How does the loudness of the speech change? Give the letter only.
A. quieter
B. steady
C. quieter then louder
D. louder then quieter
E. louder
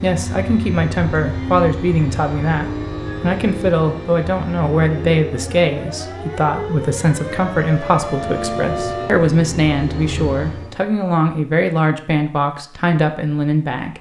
B.